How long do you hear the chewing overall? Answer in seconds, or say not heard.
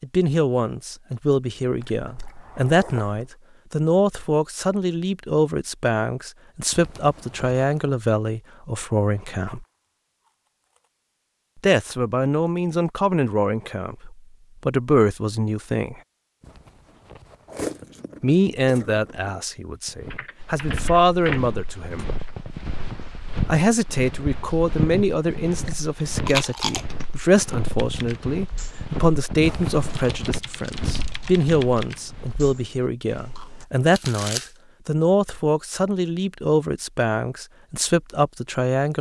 8 s.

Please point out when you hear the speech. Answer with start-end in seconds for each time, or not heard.
0.0-9.7, 11.6-15.9, 18.2-22.1, 23.4-38.9.